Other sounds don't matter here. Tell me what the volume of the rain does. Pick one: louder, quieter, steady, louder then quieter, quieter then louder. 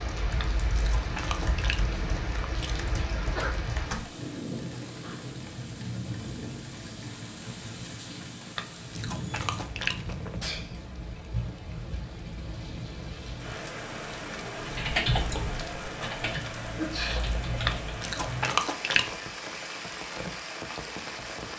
steady.